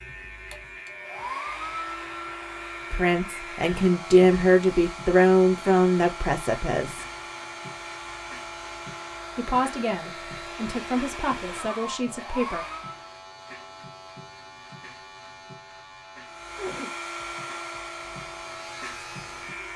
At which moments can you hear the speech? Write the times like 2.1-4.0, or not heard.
2.9-7.0, 9.3-12.7.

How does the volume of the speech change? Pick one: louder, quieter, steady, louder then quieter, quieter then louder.
quieter.